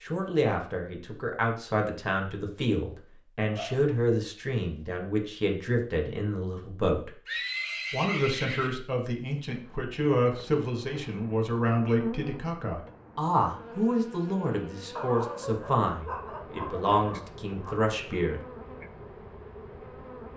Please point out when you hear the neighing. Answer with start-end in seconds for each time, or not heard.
7.2-8.8.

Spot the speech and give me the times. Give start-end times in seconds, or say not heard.
0.0-7.1, 7.9-18.4.